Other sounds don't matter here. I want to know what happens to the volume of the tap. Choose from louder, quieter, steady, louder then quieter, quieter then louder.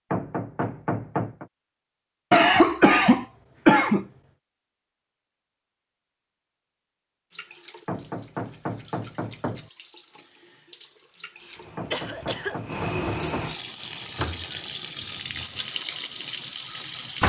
louder.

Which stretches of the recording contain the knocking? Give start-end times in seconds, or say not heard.
0.1-1.4, 7.8-9.7, 11.8-13.6.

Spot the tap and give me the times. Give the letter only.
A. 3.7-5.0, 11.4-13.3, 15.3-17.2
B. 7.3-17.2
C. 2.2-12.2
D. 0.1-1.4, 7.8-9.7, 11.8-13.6
B.